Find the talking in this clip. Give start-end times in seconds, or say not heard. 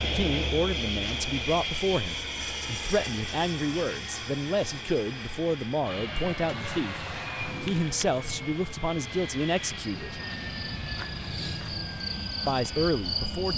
0.0-10.2, 12.4-13.5.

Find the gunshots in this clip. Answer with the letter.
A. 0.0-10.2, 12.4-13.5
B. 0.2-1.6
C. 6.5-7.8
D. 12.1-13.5
C.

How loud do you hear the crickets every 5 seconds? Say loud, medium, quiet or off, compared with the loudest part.
loud, medium, loud.